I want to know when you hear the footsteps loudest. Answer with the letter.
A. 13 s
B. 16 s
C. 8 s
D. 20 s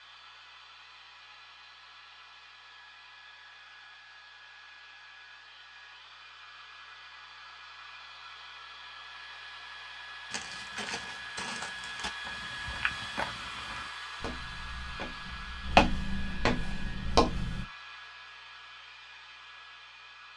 B.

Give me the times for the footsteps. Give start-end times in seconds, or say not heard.
10.3-17.6.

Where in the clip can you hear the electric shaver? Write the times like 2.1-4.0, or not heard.
not heard.